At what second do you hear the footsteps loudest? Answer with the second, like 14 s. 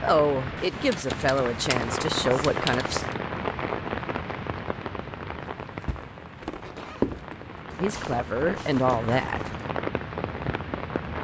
7 s.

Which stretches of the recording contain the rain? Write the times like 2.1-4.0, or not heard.
0.0-11.1.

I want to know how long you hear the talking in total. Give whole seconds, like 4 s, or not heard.
5 s.